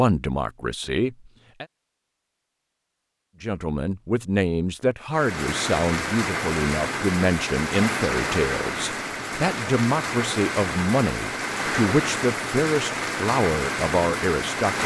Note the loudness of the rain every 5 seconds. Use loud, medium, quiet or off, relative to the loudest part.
off, loud, loud.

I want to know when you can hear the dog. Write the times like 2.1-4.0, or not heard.
not heard.